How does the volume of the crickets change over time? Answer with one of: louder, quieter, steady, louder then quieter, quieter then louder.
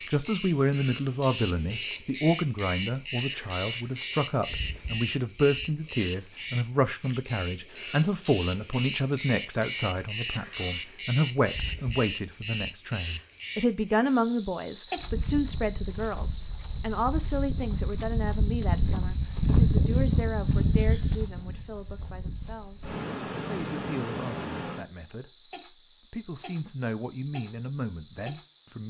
quieter.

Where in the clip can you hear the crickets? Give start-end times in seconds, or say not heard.
0.0-28.8.